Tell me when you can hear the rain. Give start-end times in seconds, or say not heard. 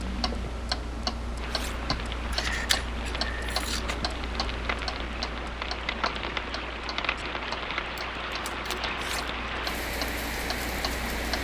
0.0-11.3.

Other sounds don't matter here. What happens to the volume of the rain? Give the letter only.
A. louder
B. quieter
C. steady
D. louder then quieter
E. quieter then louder
A.